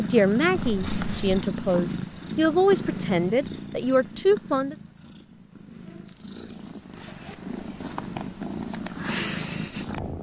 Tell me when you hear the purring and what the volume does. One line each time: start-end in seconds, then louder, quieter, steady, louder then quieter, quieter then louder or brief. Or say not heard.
0.0-10.1 quieter then louder.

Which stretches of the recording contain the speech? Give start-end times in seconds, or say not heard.
0.0-4.8.